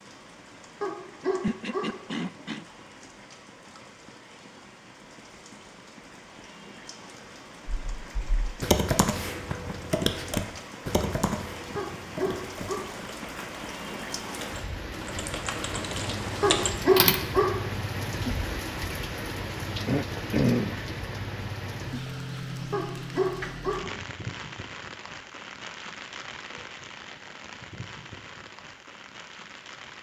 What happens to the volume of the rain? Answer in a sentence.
The loudness of the rain goes up, then down.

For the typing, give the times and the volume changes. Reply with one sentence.
You can hear the typing from 7.7 to 17.2 s, getting quieter then louder.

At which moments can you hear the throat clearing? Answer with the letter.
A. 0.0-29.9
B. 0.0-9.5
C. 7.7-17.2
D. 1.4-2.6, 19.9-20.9
D.